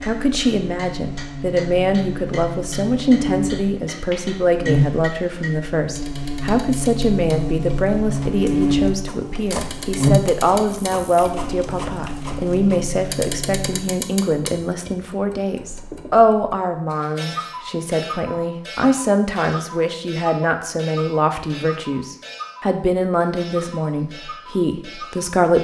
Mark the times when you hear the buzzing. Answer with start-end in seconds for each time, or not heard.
0.0-13.9.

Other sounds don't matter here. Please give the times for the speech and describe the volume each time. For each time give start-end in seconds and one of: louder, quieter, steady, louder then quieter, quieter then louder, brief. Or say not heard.
0.0-25.6 steady.